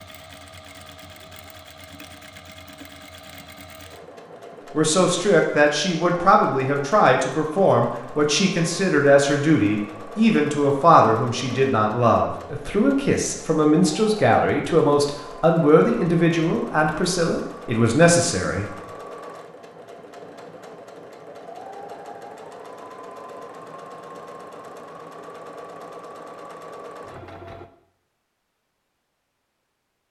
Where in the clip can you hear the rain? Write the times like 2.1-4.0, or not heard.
not heard.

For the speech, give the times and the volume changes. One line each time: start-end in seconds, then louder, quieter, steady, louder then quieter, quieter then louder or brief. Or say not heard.
4.8-18.7 steady.